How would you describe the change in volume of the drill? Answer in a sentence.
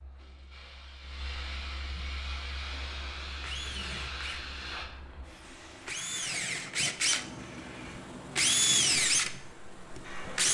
The volume of the drill goes down, then up.